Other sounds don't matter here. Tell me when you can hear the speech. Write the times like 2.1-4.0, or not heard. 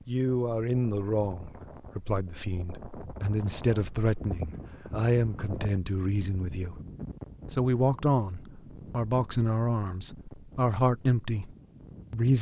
0.1-6.8, 7.5-12.3.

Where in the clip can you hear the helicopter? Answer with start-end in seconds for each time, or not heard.
not heard.